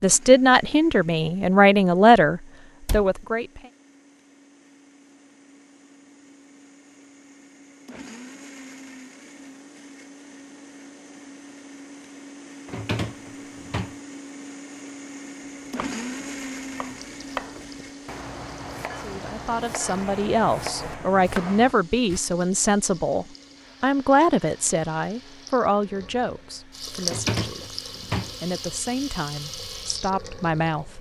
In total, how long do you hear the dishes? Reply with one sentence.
You can't hear the dishes here.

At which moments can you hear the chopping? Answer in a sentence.
The chopping can be heard from 15.7 to 22.2 s.